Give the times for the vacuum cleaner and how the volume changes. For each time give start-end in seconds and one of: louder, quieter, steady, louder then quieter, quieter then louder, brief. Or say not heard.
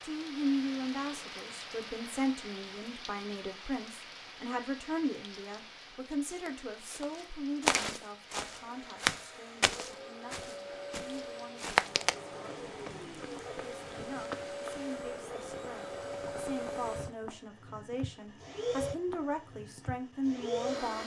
8.3-21.0 louder.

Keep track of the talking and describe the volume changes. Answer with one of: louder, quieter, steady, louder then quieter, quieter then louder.
quieter then louder.